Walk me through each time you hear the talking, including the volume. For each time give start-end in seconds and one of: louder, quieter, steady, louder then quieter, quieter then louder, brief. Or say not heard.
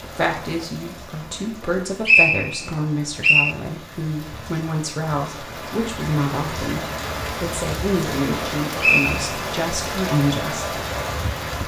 0.0-10.8 steady.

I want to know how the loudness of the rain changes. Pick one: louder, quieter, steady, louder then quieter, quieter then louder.
louder.